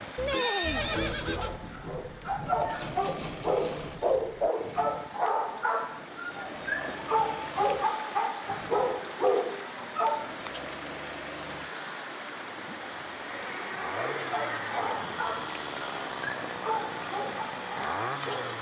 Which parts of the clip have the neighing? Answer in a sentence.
You can hear the neighing from 0.1 to 1.6 s and from 13.2 to 15.2 s.